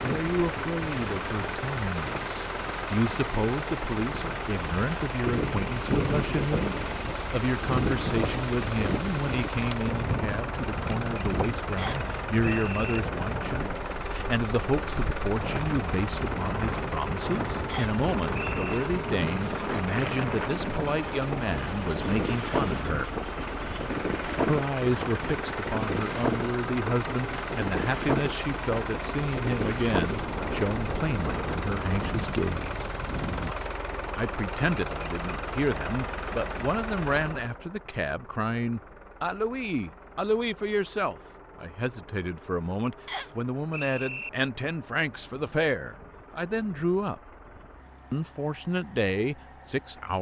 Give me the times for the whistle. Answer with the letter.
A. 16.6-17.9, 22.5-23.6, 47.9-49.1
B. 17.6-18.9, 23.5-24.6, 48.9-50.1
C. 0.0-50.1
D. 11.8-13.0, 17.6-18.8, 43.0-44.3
D.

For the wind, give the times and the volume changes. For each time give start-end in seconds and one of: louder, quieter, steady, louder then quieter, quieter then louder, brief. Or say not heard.
0.0-33.5 steady.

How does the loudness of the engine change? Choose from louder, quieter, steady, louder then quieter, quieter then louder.
quieter.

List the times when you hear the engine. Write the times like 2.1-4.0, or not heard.
0.0-50.1.